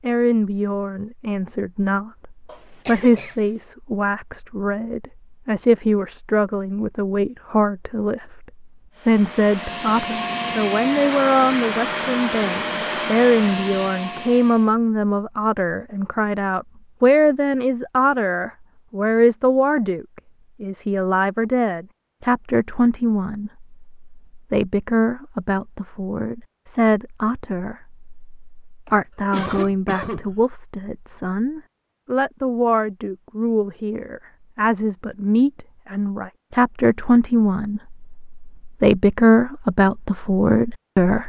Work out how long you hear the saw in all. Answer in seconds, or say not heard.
not heard.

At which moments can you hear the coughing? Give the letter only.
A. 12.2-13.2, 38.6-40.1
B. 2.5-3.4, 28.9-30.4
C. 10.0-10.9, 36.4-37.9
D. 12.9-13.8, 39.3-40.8
B.